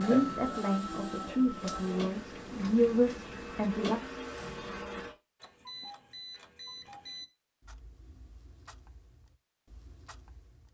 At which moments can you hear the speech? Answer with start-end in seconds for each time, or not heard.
0.0-4.0.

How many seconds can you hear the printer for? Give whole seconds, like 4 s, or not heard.
5 s.